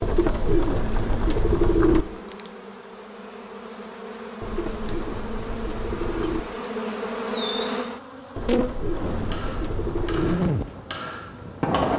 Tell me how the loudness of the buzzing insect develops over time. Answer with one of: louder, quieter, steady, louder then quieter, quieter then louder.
louder.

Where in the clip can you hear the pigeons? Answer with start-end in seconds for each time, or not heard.
0.0-2.0, 4.4-6.5, 8.3-10.3.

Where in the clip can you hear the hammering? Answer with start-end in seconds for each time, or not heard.
9.3-11.9.